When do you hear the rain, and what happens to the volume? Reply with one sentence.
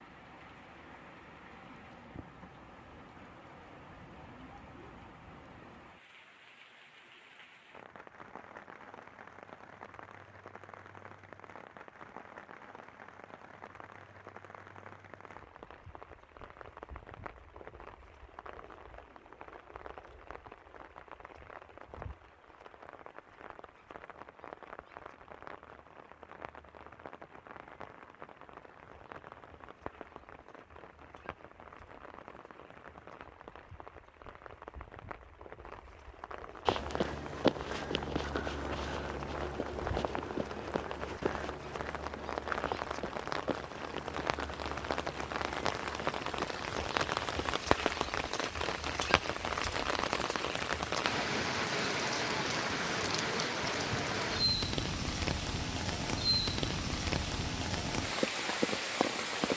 The rain can be heard from 0.0 to 59.5 s, getting louder.